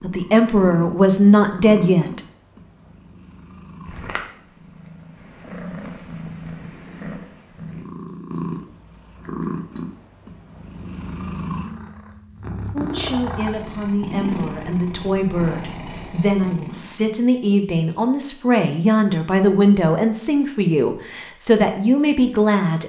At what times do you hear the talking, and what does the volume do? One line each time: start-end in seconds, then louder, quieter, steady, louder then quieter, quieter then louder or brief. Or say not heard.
0.0-2.2 brief
12.7-22.8 louder.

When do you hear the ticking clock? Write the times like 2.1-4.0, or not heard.
not heard.